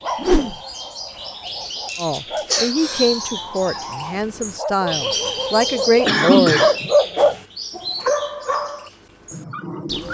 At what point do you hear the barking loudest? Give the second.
7 s.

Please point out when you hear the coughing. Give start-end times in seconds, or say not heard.
1.9-3.2, 6.0-6.9.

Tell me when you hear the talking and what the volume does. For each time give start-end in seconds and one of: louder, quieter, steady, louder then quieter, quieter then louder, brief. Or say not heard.
1.9-6.7 quieter then louder.